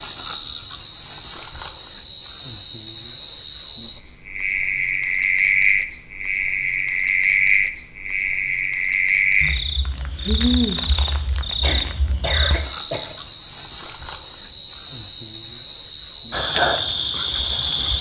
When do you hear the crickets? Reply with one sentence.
You can hear the crickets from 0.0 to 17.9 s.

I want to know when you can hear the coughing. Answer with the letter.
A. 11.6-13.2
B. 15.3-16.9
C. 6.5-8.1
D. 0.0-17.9
A.